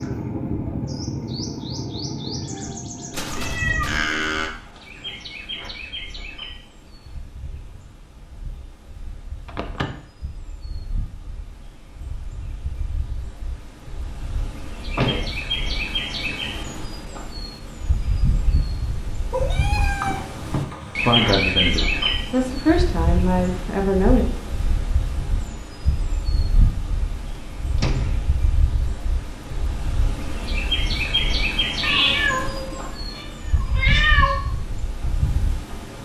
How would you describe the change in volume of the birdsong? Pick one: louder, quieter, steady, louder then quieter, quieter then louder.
quieter then louder.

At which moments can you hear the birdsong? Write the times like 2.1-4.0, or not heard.
0.0-36.0.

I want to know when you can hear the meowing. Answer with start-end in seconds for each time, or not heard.
3.1-4.5, 19.3-21.1, 31.8-34.4.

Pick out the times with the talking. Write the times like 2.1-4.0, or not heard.
20.9-24.3.